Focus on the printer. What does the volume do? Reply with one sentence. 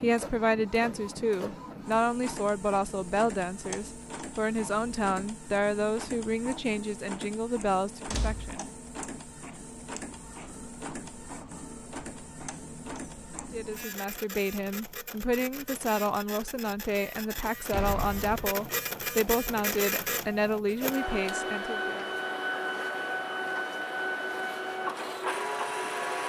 The loudness of the printer goes up.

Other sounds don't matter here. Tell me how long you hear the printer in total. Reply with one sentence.
The printer can be heard for 26 seconds in total.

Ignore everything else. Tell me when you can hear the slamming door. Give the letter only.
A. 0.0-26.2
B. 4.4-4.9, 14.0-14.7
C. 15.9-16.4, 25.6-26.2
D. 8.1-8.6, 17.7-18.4
D.